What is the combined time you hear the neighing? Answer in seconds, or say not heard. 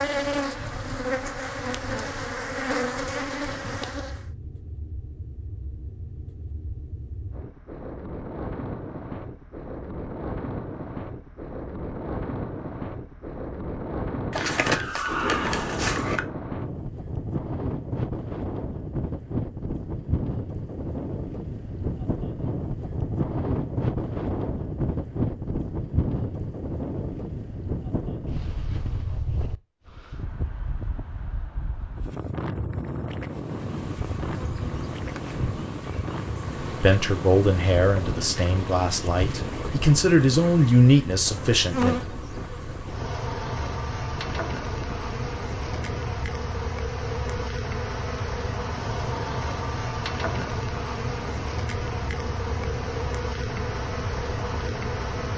2 s.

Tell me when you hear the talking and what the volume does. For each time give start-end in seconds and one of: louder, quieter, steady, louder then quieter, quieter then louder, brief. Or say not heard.
36.6-42.1 quieter then louder.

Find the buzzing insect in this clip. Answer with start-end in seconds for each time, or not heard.
0.0-4.2, 33.3-55.3.